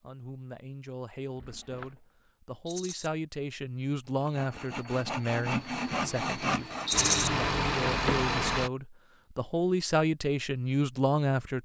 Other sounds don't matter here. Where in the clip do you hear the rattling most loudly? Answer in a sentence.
The volume of the rattling peaks at 7 seconds.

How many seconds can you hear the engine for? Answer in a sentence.
You can hear the engine for 3 seconds altogether.